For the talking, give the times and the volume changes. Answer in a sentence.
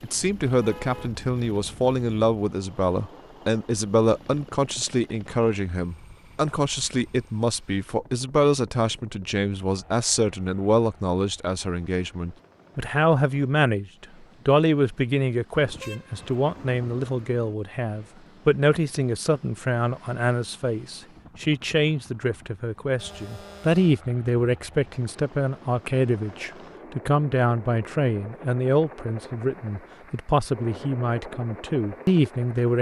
The talking can be heard from 0.0 to 32.7 s, at a steady volume.